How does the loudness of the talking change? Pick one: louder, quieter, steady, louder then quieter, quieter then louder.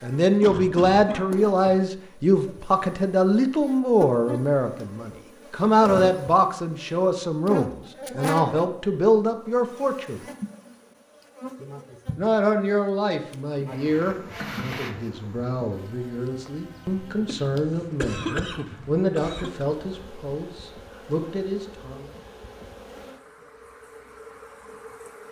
quieter.